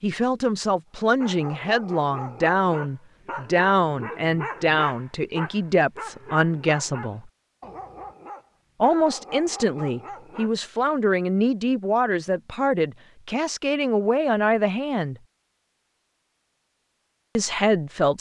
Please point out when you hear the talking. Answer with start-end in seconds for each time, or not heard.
0.0-7.3, 8.8-15.2, 17.4-18.1.